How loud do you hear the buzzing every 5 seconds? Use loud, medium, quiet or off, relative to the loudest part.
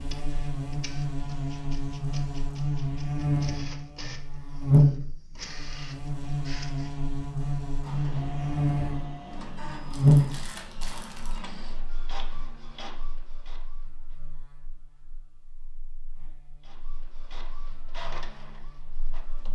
loud, medium, loud, quiet.